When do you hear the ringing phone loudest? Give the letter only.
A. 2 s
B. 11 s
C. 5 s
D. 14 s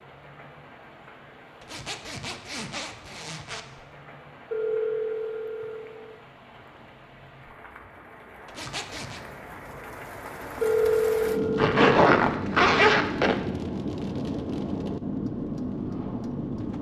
B.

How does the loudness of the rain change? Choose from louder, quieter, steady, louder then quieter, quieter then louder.
louder.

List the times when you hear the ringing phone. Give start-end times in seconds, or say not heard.
4.5-6.2, 10.6-11.7.